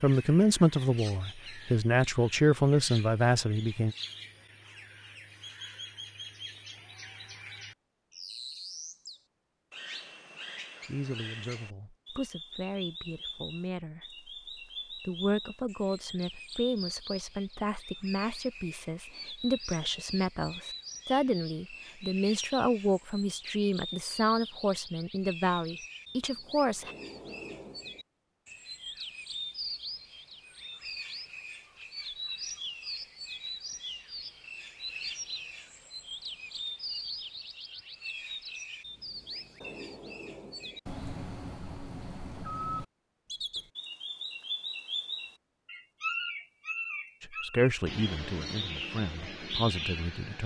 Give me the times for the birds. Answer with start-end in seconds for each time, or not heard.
0.0-50.4.